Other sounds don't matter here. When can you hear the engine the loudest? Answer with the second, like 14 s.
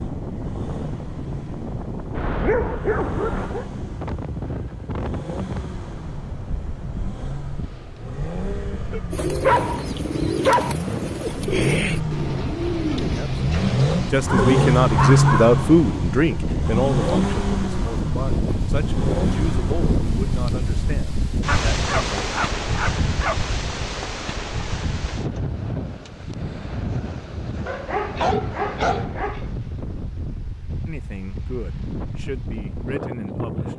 15 s.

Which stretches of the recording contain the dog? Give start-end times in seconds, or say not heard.
2.1-3.7, 8.9-10.8, 14.2-15.7, 21.4-23.4, 27.6-29.4.